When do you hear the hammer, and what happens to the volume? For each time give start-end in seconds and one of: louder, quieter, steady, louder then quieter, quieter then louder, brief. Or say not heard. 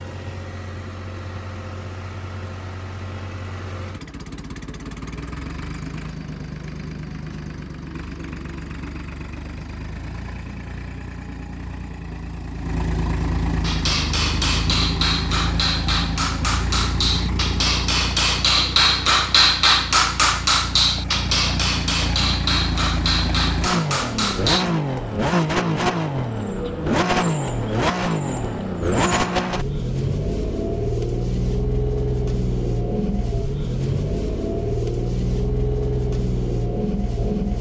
13.6-24.6 louder then quieter.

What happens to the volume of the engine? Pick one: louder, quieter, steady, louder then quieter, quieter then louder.
louder.